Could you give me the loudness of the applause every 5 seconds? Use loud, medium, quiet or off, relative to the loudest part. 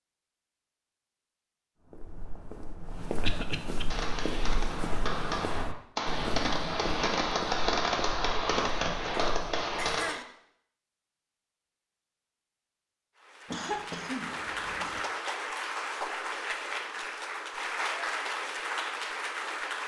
off, off, loud, loud.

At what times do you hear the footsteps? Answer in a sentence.
You can hear the footsteps from 1.9 to 10.0 s.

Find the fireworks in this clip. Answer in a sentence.
You can hear the fireworks from 3.9 to 10.2 s.